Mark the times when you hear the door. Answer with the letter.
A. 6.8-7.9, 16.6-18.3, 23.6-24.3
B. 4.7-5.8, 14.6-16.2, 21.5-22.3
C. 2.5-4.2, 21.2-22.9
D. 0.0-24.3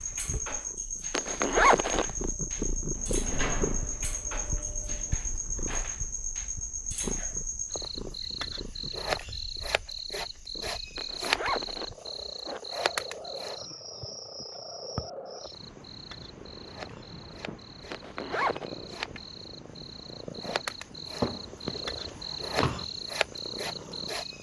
C.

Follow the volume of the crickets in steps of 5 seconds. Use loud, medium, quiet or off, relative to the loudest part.
loud, loud, loud, medium, loud.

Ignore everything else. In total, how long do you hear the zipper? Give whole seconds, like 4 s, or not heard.
4 s.